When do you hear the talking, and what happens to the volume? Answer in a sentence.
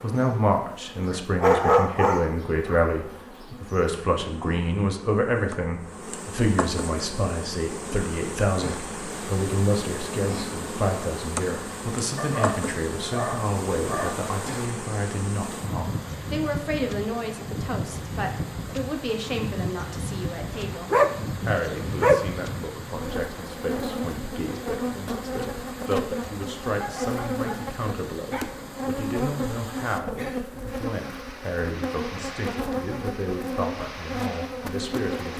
The talking can be heard from 0.0 to 35.3 s, getting quieter.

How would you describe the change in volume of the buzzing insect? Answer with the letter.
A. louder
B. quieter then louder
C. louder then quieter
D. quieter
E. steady
A.